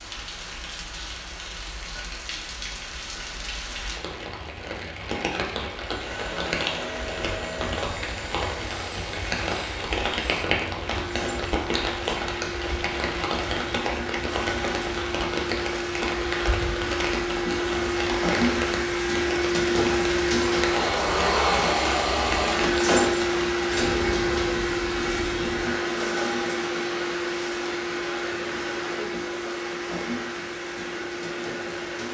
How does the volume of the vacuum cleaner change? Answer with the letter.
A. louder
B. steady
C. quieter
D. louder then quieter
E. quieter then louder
D.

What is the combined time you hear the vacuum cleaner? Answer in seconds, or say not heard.
26 s.